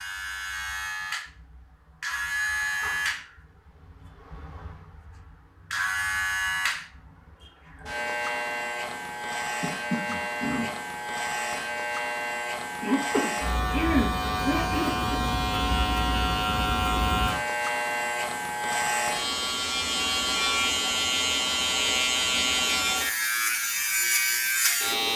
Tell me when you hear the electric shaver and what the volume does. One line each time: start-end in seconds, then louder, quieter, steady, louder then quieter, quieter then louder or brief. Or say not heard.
0.0-25.1 louder.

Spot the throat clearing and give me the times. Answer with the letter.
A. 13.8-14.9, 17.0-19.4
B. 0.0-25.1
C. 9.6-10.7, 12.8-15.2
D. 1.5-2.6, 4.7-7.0
C.